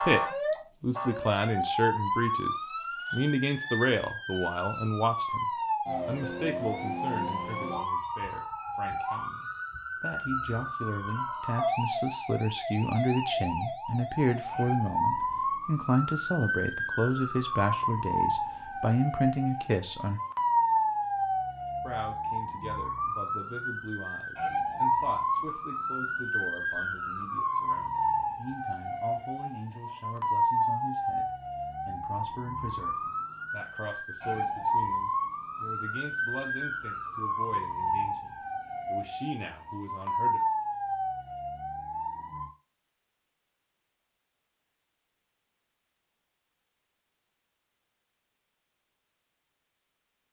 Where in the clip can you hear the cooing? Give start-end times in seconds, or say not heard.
not heard.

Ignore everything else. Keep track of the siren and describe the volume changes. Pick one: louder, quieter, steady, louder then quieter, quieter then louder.
steady.